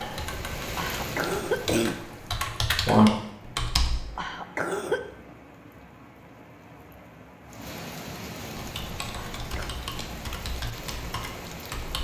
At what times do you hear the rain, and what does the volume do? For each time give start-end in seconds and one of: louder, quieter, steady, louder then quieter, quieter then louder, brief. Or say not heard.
0.0-11.9 quieter then louder.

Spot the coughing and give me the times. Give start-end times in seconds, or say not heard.
0.8-2.0, 4.2-5.0, 9.2-9.8.